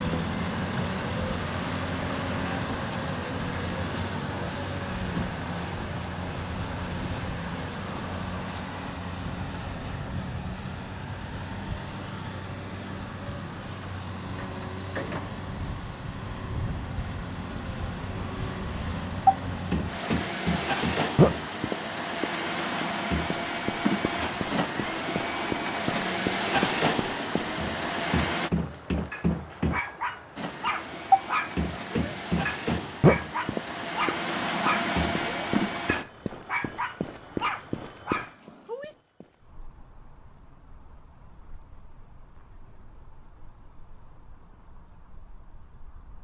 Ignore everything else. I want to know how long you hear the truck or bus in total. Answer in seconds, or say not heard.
34 s.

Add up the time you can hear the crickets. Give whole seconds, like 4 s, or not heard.
27 s.